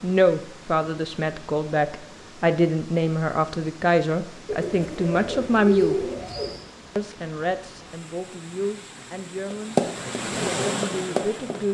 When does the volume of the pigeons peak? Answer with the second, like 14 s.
6 s.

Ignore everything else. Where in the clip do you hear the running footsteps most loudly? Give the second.
10 s.